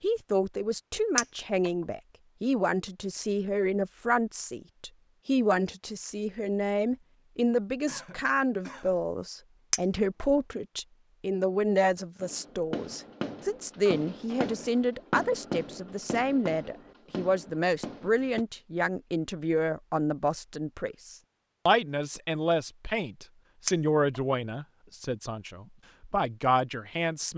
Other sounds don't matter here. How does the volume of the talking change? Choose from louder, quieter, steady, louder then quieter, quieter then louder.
steady.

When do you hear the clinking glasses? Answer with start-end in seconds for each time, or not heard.
1.1-1.7, 9.7-10.2, 23.6-24.2.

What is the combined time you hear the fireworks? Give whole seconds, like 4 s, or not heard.
6 s.